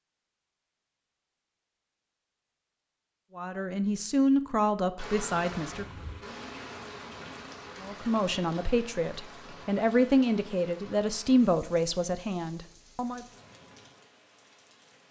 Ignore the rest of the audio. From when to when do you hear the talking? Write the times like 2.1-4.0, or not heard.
3.4-5.8, 7.8-13.2.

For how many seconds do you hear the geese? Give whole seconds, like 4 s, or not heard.
not heard.